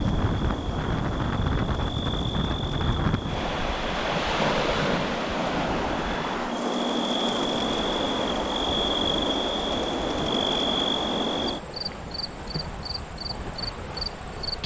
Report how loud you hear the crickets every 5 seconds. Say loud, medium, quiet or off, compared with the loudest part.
medium, loud, loud.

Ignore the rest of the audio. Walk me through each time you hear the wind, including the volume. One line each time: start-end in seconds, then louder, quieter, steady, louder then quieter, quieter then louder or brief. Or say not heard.
0.0-14.6 quieter.